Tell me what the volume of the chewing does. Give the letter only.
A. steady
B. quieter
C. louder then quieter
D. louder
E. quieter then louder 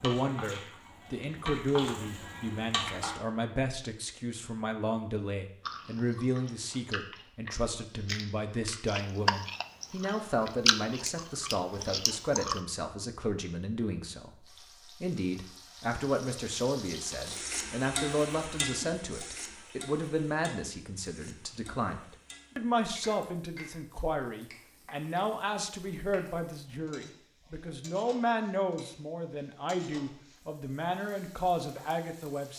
C.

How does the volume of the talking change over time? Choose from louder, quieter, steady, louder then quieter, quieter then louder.
steady.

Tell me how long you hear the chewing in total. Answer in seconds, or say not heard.
7 s.